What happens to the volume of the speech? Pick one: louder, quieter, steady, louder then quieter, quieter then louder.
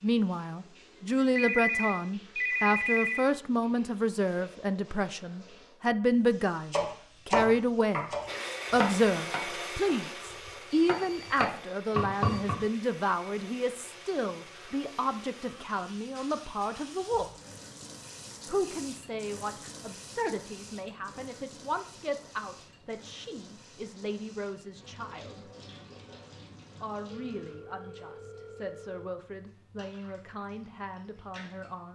quieter.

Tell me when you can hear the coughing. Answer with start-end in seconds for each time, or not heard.
not heard.